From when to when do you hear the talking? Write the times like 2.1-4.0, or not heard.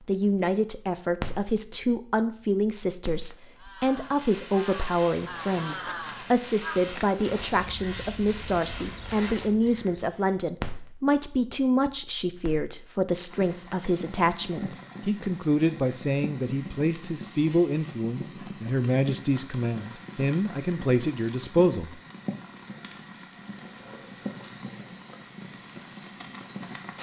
0.1-22.0.